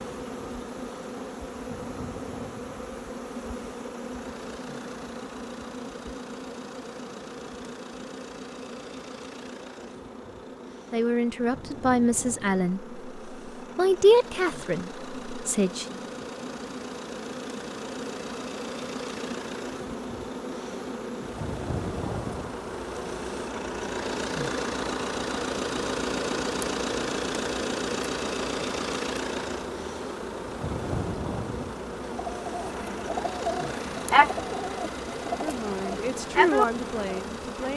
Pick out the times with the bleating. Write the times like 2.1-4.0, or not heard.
not heard.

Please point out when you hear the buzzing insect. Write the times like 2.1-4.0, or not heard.
0.0-37.7.